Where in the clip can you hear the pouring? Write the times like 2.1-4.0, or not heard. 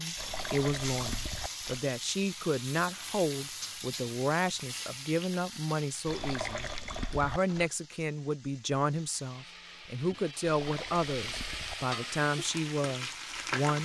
0.1-1.9, 6.0-7.7, 10.4-11.8.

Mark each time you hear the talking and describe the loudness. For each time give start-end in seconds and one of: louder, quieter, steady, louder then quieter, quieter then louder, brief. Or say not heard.
0.0-13.7 steady.